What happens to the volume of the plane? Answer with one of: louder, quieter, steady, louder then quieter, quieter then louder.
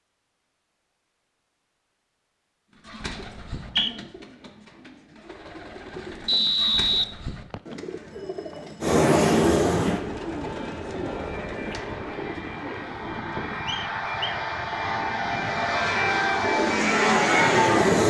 quieter then louder.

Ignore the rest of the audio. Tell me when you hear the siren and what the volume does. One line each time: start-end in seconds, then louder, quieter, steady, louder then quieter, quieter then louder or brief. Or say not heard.
not heard.